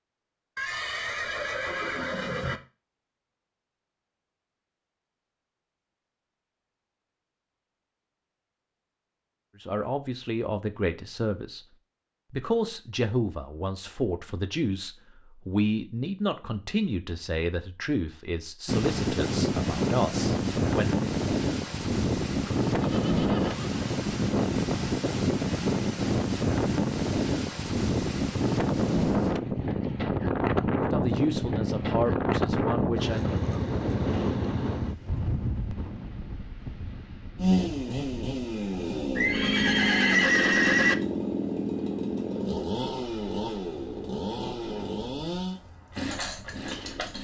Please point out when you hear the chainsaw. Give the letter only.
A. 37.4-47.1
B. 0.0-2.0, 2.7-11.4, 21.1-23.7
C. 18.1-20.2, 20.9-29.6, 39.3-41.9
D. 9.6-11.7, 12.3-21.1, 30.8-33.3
A.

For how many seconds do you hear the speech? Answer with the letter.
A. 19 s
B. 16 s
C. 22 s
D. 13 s
D.